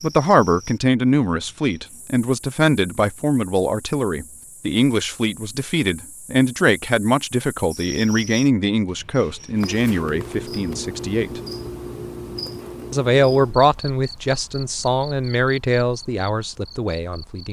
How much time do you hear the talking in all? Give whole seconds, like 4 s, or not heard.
16 s.